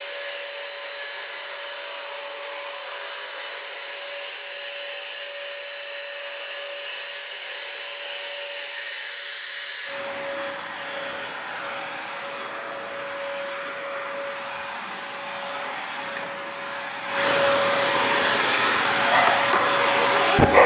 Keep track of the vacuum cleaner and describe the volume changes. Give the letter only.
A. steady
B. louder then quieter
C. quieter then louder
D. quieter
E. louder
E.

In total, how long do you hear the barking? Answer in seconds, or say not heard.
2 s.